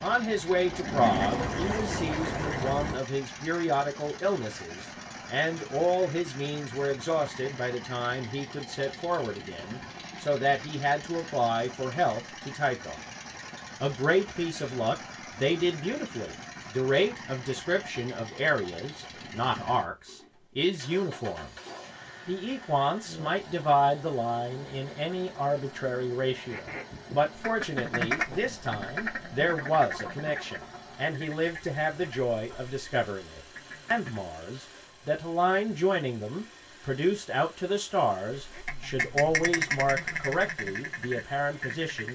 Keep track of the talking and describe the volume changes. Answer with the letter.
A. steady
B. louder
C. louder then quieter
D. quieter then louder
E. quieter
A.